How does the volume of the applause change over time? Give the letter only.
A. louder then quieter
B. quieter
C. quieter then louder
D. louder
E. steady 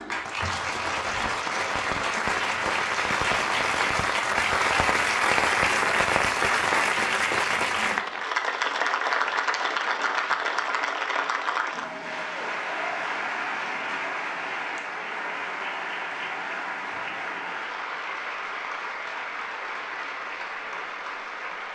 B.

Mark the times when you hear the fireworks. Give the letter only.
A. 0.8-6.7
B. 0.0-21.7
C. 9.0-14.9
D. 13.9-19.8
A.